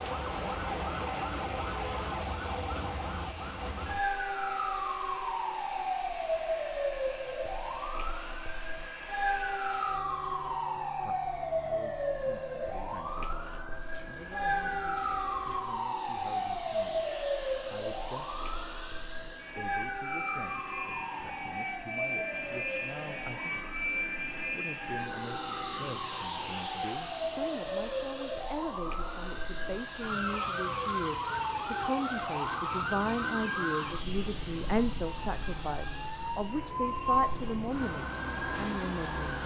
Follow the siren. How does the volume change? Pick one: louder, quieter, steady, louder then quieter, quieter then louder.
steady.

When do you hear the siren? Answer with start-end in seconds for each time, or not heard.
0.0-39.4.